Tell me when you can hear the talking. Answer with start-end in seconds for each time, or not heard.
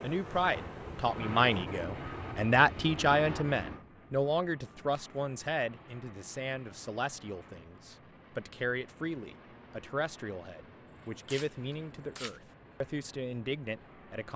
0.0-14.3.